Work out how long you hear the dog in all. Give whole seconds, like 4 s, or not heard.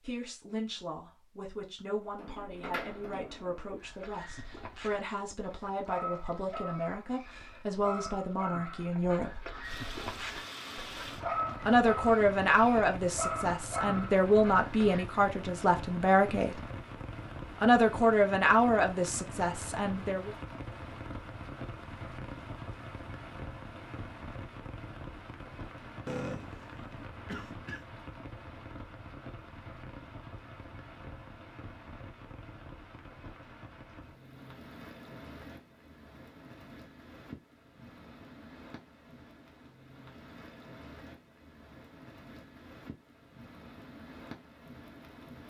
11 s.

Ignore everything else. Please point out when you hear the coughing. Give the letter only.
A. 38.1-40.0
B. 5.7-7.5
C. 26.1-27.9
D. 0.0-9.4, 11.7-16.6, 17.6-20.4
C.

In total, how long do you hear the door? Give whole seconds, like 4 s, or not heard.
2 s.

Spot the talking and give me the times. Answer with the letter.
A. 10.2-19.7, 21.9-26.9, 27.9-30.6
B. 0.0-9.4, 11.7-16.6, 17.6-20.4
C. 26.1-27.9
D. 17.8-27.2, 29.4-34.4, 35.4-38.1
B.